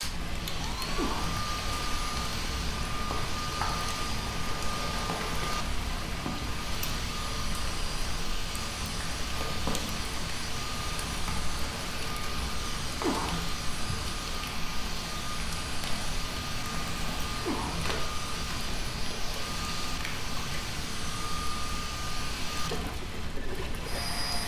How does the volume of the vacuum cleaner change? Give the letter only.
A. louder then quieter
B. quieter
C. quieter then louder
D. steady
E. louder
D.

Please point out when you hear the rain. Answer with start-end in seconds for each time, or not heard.
0.0-24.4.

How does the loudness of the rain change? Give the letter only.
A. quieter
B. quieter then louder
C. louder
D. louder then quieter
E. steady
E.